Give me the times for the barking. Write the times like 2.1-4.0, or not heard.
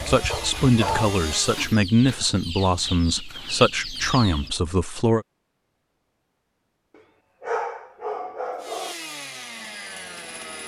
0.2-1.6, 7.0-8.9.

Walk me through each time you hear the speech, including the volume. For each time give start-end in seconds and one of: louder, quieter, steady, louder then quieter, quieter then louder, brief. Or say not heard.
0.1-5.2 steady.